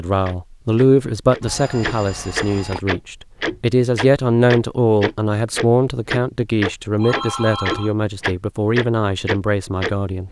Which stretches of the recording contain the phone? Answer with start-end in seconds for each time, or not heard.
1.4-2.8, 7.0-8.0.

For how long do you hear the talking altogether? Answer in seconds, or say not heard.
10 s.